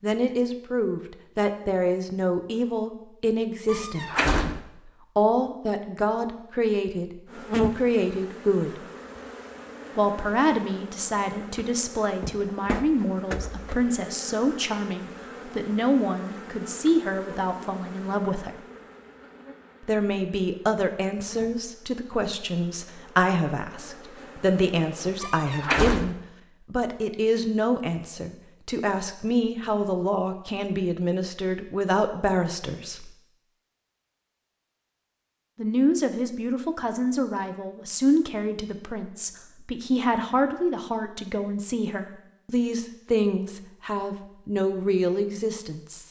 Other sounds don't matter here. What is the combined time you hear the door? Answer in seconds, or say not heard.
2 s.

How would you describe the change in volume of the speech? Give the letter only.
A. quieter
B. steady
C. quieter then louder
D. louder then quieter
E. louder
B.